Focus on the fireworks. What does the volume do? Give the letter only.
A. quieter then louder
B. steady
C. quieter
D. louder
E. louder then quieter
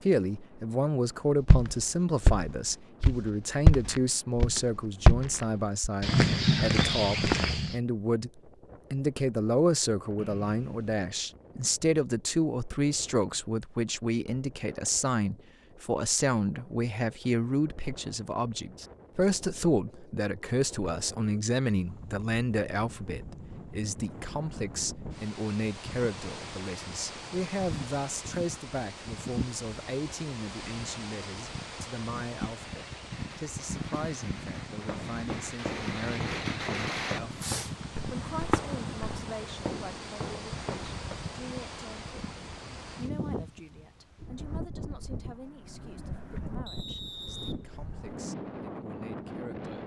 D.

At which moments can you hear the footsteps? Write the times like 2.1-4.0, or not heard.
1.4-7.8, 34.7-41.2.